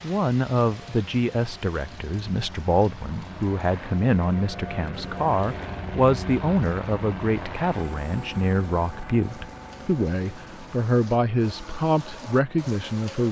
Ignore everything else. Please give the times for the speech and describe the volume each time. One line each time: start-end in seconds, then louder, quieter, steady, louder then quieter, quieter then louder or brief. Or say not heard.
0.0-13.2 steady.